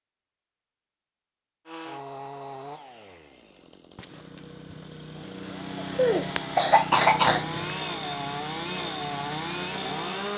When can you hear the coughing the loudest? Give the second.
7 s.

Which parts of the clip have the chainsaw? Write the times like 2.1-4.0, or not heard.
1.6-10.3.